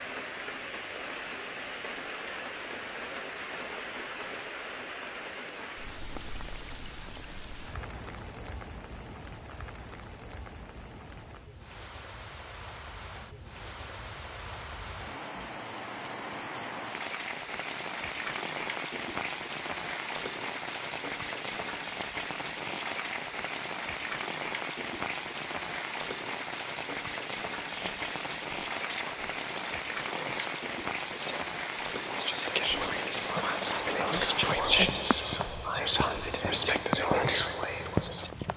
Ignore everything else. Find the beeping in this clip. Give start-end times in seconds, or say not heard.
not heard.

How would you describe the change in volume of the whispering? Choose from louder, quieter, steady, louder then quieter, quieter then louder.
louder.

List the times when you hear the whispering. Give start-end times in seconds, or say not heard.
27.8-38.3.